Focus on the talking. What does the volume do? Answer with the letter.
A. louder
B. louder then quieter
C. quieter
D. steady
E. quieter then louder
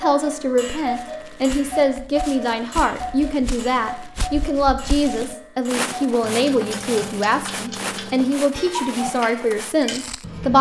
D.